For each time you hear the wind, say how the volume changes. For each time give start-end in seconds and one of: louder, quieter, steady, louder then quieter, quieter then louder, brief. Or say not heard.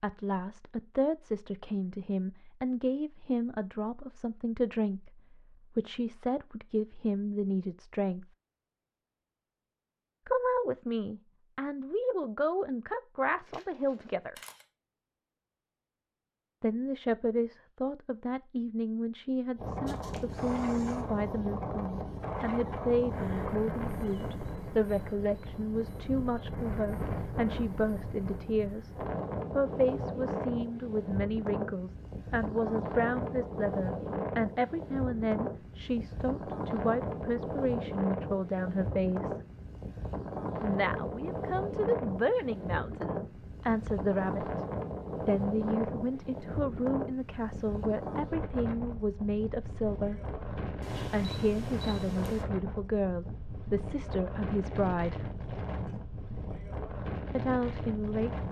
19.6-58.4 steady.